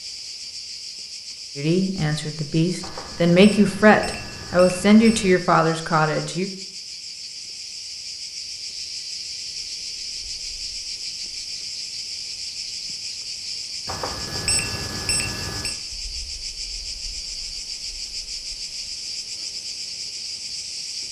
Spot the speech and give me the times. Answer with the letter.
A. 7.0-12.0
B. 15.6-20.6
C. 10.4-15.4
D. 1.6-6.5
D.